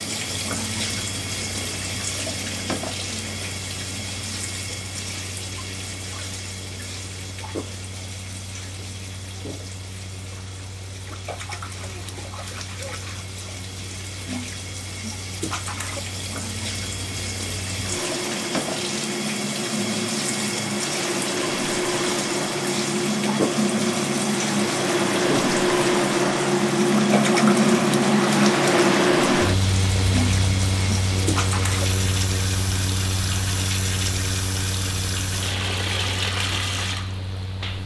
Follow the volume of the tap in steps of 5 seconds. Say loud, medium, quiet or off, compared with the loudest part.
loud, medium, medium, loud, loud, loud, loud, loud.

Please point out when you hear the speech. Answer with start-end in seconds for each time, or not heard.
not heard.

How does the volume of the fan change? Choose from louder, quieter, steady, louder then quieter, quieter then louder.
louder then quieter.